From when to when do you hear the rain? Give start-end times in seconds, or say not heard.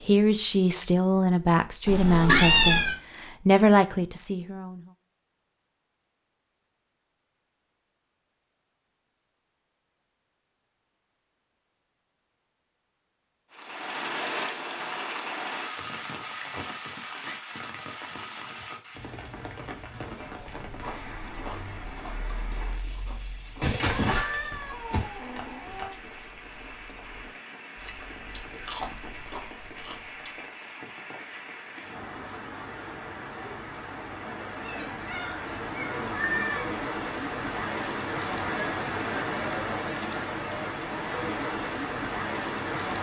13.5-42.9.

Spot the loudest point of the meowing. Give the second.
2 s.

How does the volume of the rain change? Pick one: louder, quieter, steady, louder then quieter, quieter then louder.
quieter then louder.